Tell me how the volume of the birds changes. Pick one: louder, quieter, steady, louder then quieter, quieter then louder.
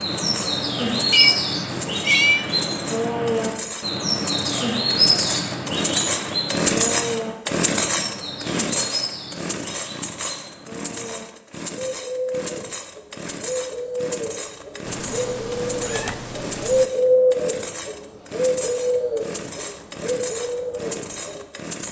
quieter then louder.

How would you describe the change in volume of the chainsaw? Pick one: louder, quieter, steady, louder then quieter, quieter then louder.
louder then quieter.